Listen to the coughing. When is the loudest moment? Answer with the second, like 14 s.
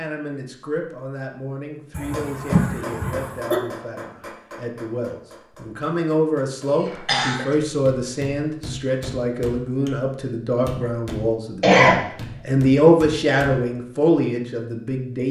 12 s.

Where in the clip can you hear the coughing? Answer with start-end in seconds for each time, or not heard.
1.9-3.6, 6.7-7.5, 11.6-12.0.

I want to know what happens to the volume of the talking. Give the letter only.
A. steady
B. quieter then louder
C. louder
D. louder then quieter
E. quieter
C.